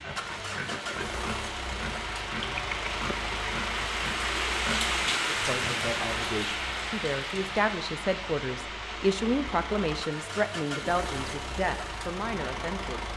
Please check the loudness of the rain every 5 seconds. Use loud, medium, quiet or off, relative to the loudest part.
loud, loud, medium.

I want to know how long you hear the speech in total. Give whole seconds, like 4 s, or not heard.
8 s.